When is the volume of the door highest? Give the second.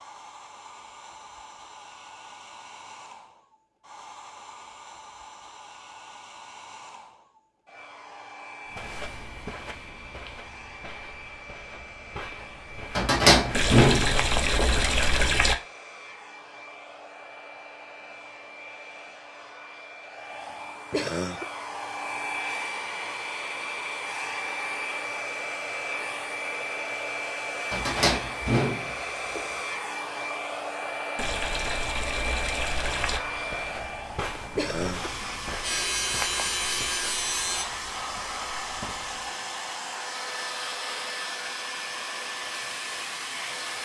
13 s.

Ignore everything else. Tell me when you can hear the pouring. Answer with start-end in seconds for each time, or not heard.
13.5-15.6, 31.1-33.2.